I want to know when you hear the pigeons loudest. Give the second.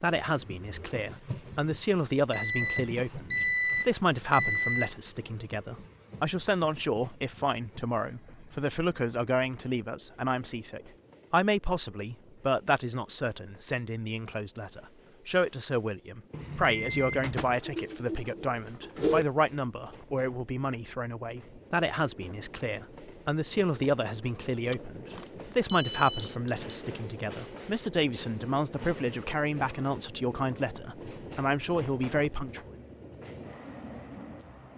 19 s.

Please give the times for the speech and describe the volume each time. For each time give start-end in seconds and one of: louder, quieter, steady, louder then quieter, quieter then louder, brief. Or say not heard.
0.0-32.7 steady.